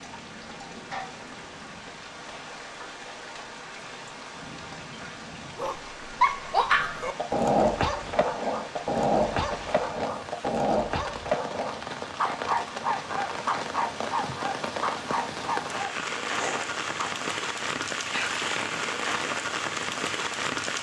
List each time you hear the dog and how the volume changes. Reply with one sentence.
The dog can be heard from 5.5 to 17.1 s, getting quieter.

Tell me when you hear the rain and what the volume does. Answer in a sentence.
The rain can be heard from 0.0 to 20.7 s, getting louder.